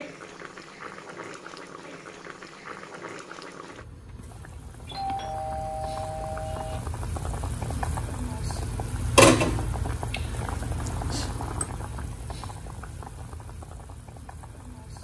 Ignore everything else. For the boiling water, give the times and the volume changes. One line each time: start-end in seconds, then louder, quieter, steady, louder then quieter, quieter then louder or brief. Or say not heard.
0.0-14.9 louder then quieter.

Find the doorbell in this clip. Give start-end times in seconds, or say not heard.
4.8-6.8.